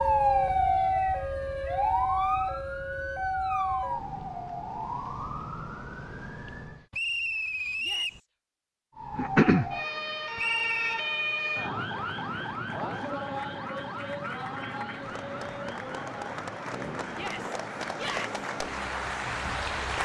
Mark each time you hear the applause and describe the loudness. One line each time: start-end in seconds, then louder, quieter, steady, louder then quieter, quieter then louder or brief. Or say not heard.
11.8-20.0 louder.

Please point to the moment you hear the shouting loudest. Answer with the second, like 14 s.
18 s.